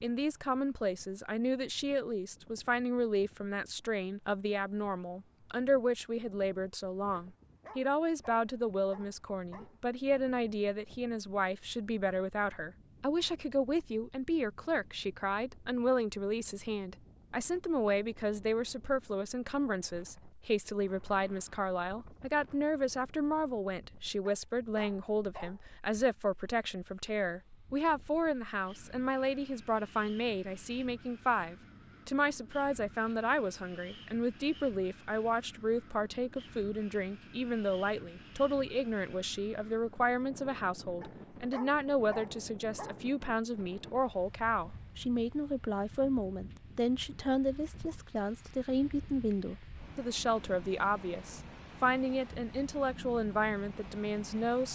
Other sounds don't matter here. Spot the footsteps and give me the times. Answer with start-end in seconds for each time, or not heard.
not heard.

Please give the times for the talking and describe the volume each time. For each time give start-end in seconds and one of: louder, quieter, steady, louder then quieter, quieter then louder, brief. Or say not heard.
0.0-54.7 steady.